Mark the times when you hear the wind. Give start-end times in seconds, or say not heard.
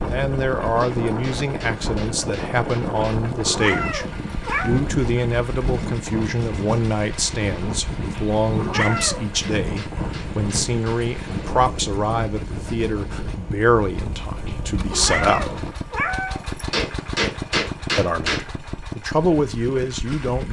0.0-15.8.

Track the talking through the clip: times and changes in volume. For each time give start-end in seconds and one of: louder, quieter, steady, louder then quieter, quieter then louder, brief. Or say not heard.
0.0-15.5 steady
17.9-20.4 brief.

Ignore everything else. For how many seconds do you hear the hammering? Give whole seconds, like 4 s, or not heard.
6 s.